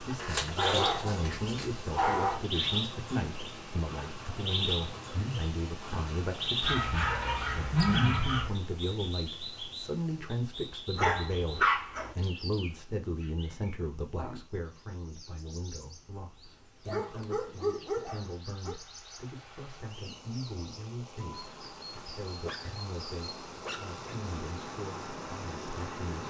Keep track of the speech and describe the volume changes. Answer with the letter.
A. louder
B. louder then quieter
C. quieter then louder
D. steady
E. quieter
E.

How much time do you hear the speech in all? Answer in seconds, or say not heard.
26 s.